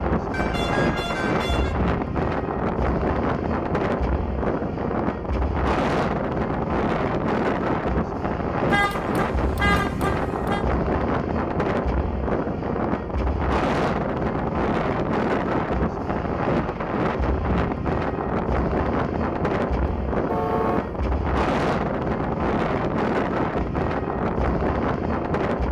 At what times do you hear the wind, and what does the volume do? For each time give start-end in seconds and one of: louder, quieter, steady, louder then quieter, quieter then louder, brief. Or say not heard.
0.0-25.6 steady.